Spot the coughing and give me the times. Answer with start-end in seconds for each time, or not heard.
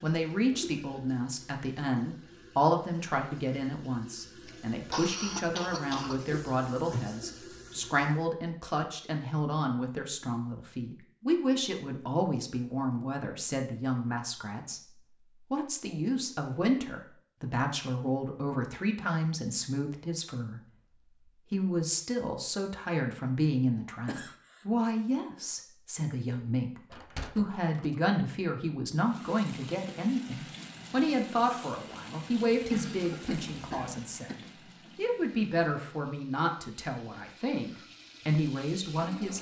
4.5-6.2, 24.1-24.6, 32.7-34.4.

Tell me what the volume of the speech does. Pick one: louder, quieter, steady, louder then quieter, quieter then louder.
steady.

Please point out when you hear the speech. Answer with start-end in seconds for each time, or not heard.
0.0-20.6, 21.5-39.3.